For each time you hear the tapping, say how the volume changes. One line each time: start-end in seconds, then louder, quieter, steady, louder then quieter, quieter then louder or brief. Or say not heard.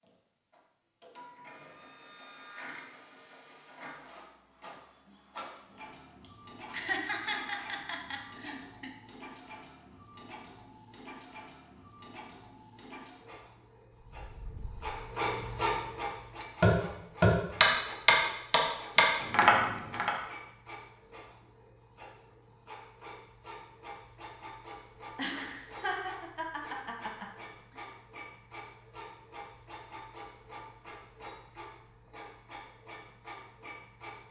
14.4-20.1 louder.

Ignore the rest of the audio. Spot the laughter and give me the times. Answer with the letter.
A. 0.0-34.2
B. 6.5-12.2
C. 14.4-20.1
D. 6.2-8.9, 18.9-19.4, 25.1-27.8
D.